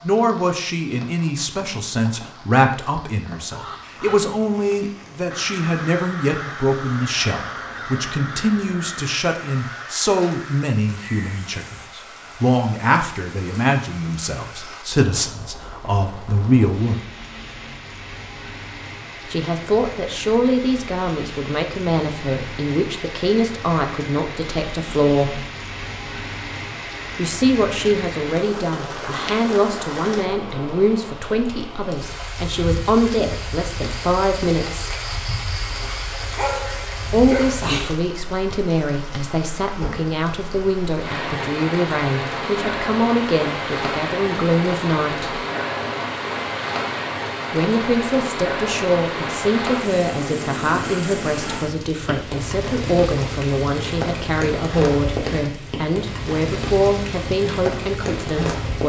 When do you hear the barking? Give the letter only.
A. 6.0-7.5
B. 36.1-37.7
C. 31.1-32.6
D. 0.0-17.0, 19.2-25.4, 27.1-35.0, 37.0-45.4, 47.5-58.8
B.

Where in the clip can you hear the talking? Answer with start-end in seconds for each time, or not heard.
0.0-17.0, 19.2-25.4, 27.1-35.0, 37.0-45.4, 47.5-58.8.